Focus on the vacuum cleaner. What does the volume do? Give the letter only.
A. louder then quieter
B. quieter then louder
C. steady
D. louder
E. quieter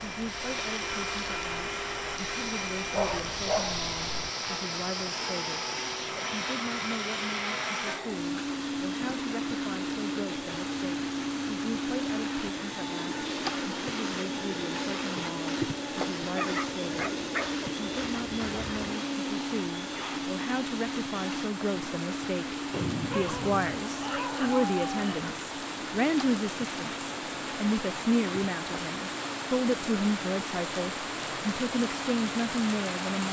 E.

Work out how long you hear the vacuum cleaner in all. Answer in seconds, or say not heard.
33 s.